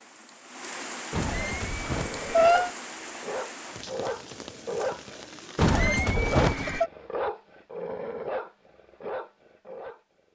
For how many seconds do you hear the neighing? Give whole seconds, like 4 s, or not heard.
3 s.